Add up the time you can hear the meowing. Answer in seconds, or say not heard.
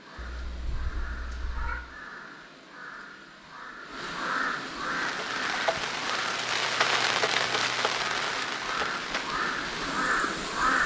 2 s.